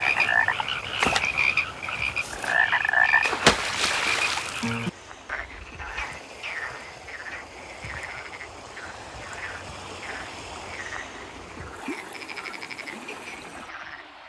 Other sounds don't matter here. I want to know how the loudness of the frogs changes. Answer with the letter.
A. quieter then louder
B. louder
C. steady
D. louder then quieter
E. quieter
E.